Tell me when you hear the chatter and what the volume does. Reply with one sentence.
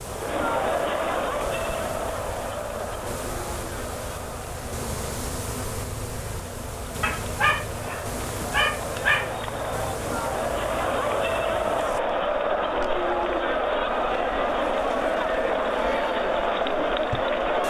You can hear the chatter from 0.0 to 17.6 s, getting quieter then louder.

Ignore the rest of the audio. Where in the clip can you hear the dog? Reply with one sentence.
The dog can be heard from 7.0 to 9.3 s.